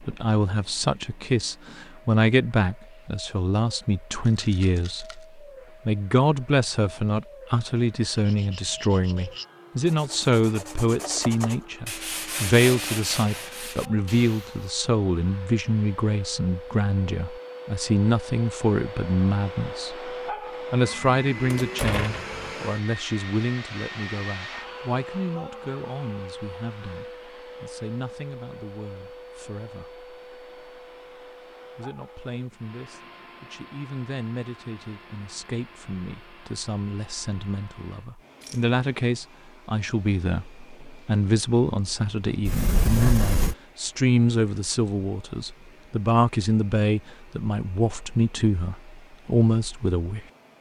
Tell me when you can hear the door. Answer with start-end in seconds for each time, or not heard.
21.5-22.4, 42.5-43.5.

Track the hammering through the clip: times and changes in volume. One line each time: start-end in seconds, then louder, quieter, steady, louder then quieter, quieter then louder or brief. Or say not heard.
not heard.